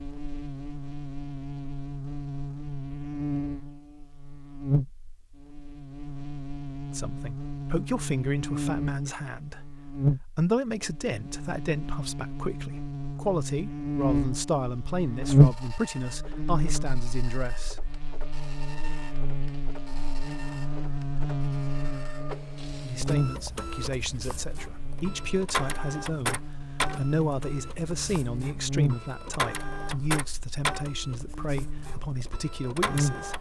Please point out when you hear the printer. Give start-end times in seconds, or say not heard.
15.1-33.3.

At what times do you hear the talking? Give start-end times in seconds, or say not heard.
6.9-17.8, 22.8-33.3.